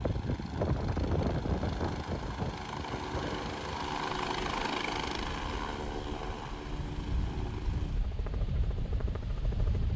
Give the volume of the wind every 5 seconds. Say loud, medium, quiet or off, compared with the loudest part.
loud, medium.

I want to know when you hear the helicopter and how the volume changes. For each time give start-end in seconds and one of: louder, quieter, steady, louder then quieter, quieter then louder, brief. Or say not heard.
0.0-9.9 louder then quieter.